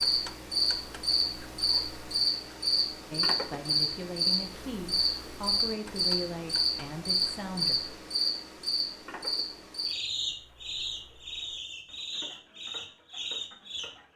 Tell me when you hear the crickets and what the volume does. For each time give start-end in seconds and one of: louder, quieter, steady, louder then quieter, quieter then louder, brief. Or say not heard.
0.0-13.9 quieter.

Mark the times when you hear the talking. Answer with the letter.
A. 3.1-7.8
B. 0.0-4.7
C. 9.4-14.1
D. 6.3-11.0
A.